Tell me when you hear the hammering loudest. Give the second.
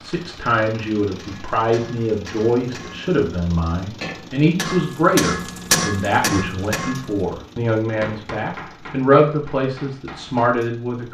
6 s.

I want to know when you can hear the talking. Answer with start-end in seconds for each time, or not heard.
0.0-11.0.